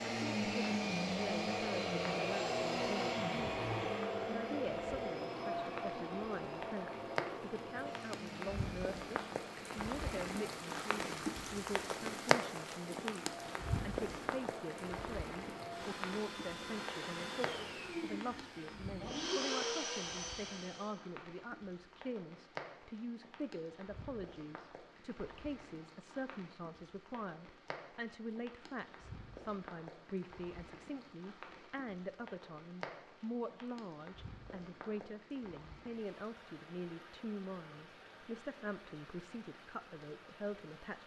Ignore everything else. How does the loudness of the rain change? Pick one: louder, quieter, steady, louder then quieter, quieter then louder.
quieter.